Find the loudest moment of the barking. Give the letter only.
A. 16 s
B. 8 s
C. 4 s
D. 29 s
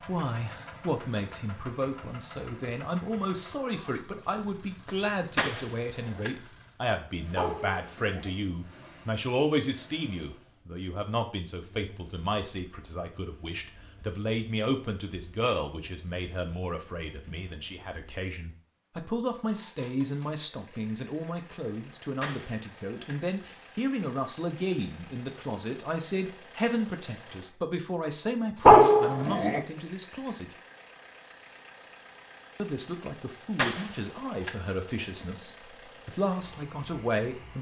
D.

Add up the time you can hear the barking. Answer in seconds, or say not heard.
2 s.